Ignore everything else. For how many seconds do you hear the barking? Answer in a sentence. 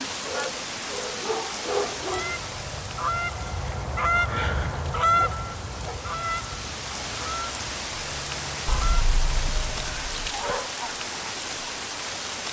The barking can be heard for 5 seconds in total.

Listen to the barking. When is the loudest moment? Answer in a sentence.
The loudest moment of the barking is at 2 seconds.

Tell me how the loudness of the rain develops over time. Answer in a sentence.
The volume of the rain goes down, then up.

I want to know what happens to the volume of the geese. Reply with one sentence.
The volume of the geese goes up, then down.